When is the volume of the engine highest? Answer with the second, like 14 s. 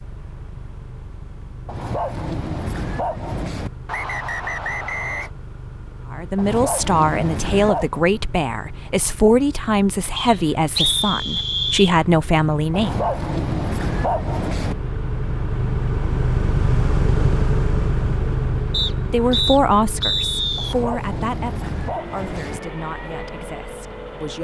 17 s.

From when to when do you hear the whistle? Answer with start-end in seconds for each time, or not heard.
3.9-5.3, 10.2-11.9, 18.7-20.8.